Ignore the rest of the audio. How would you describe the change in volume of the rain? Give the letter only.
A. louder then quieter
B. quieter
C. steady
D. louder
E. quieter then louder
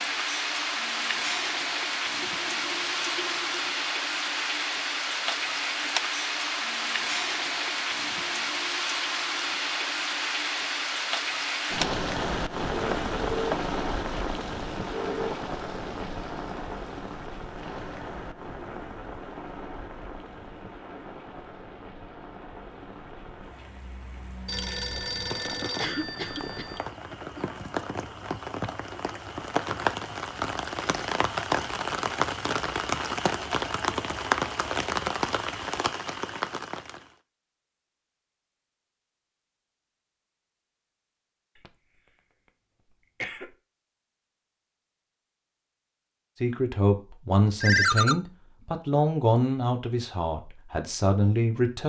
E.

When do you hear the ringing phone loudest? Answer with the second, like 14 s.
48 s.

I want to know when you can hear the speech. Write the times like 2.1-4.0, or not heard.
46.4-51.8.